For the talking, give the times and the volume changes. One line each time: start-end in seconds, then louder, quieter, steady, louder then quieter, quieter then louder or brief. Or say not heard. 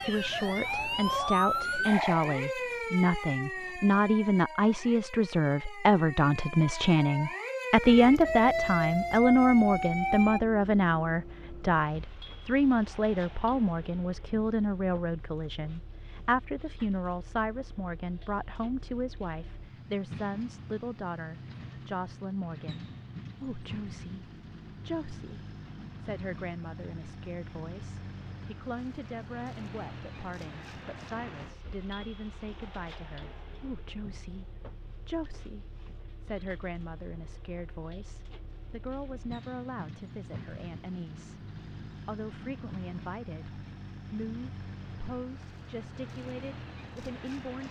0.0-47.6 quieter.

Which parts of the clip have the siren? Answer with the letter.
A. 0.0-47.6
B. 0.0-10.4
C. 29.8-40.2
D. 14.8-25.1
B.